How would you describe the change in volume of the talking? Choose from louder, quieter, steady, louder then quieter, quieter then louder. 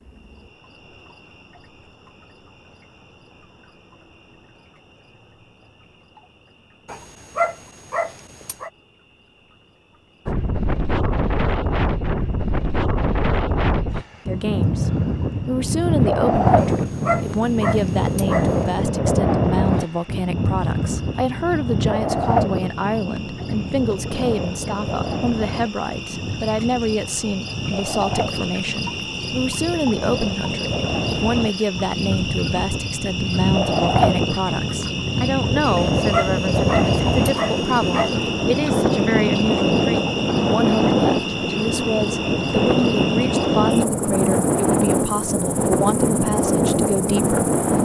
steady.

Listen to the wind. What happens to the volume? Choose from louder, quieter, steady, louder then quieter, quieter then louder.
quieter then louder.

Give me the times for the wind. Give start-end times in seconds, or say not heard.
10.2-47.7.